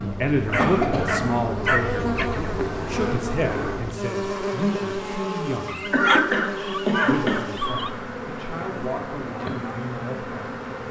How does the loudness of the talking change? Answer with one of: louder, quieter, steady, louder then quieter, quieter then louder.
quieter.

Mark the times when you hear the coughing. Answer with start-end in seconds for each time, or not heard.
0.6-1.4, 5.9-7.5.